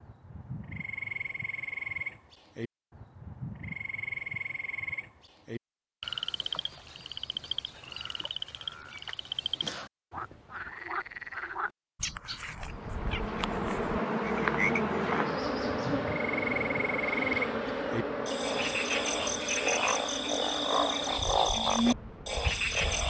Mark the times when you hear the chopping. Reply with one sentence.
You can't hear the chopping here.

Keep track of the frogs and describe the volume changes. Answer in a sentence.
The volume of the frogs goes up.